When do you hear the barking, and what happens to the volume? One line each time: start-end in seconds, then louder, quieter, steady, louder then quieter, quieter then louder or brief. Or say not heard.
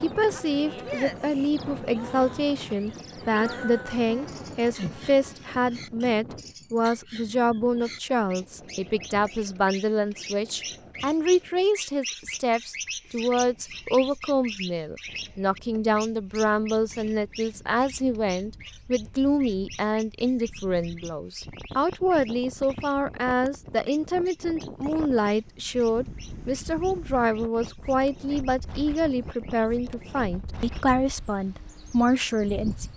not heard.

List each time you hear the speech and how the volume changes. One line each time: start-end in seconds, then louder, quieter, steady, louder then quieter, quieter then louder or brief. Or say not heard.
0.0-32.9 steady.